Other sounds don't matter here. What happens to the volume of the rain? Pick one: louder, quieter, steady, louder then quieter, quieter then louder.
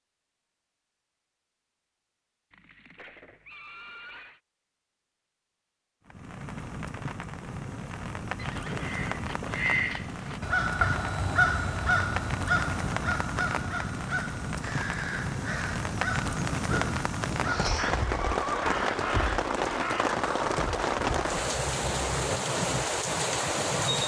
louder.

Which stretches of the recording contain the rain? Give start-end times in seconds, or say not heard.
6.0-24.0.